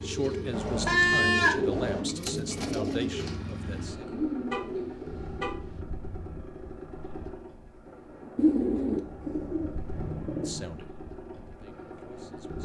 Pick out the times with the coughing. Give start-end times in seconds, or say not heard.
not heard.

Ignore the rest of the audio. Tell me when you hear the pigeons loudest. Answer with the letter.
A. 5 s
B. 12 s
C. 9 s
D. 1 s
C.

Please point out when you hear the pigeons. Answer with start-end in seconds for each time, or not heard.
0.0-5.5, 8.3-10.5.